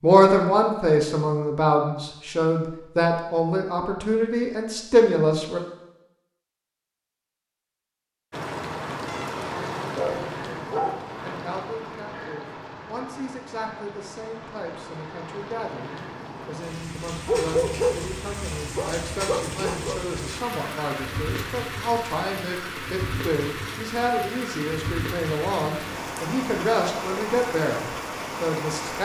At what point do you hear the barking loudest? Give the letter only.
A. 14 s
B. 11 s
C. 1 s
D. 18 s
D.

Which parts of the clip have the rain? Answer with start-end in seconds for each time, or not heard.
8.3-29.0.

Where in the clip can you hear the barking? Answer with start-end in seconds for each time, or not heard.
9.1-11.1, 17.2-20.0.